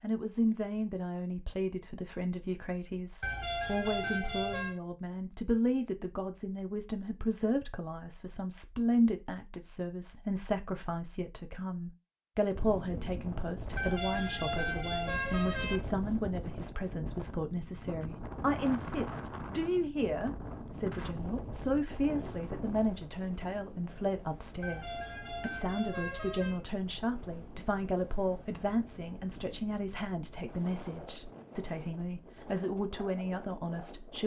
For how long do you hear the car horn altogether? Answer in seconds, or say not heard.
6 s.